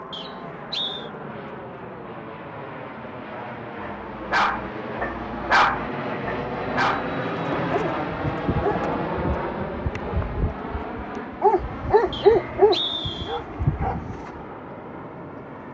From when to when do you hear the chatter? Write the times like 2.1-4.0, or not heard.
not heard.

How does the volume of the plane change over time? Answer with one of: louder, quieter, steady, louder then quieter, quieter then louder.
louder then quieter.